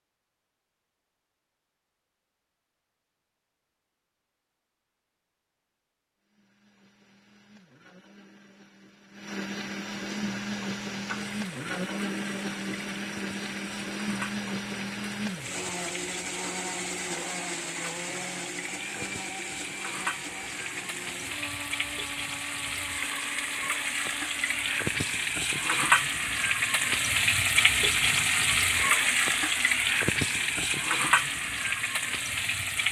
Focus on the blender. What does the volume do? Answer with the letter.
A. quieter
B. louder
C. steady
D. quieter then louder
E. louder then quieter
E.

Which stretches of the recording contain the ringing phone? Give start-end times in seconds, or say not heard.
not heard.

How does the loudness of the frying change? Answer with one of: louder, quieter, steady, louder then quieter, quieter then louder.
louder.